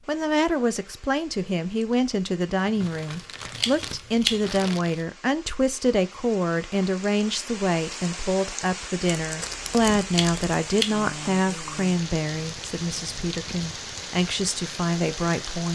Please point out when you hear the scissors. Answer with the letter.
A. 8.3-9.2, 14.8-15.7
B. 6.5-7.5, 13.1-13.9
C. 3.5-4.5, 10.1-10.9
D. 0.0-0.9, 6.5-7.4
C.